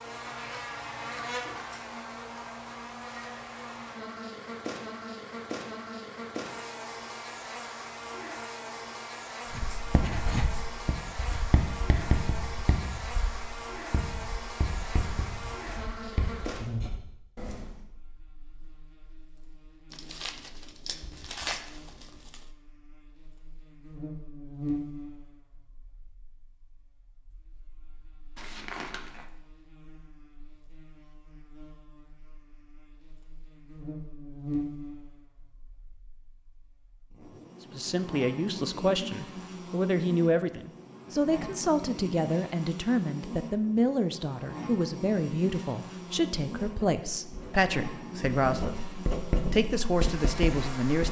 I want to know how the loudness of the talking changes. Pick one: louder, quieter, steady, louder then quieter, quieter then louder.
steady.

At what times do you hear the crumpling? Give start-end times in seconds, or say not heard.
19.9-22.4, 28.4-29.2.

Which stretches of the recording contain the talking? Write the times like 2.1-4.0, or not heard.
37.8-51.0.